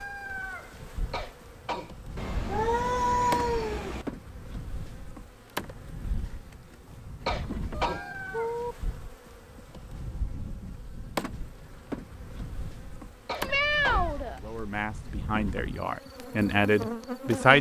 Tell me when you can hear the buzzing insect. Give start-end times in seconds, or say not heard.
0.0-17.5.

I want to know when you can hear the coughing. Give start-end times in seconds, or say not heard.
1.1-1.9, 7.2-8.1, 13.2-14.1.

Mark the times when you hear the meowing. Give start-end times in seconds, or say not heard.
2.1-4.0, 7.7-8.8, 13.4-15.2.